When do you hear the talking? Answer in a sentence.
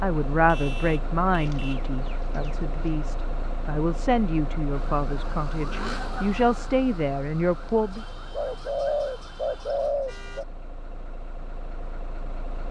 You can hear the talking from 0.0 to 8.1 s.